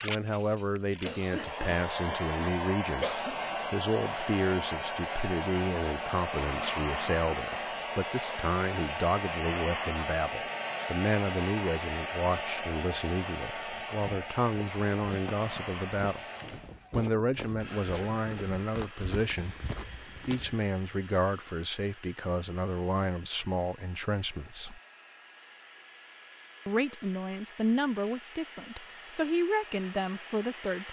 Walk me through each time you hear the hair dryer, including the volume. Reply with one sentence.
You can hear the hair dryer from 0.0 to 30.8 s, getting quieter.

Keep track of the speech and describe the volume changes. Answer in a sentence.
The loudness of the speech stays about the same.